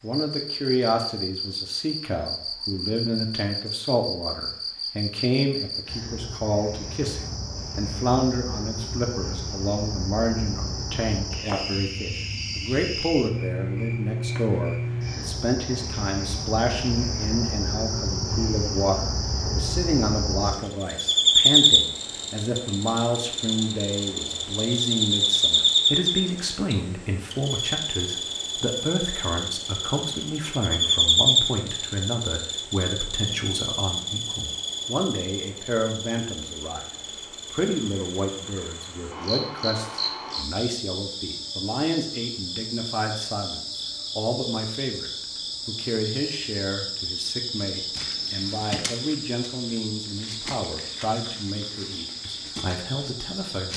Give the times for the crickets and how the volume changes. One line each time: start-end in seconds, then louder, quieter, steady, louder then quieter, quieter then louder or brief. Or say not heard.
0.1-53.7 louder then quieter.